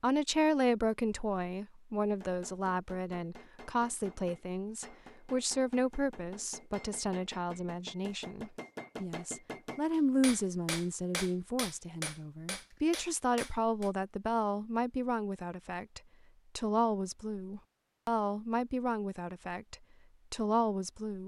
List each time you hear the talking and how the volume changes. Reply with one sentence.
The talking can be heard from 0.0 to 21.2 s, at a steady volume.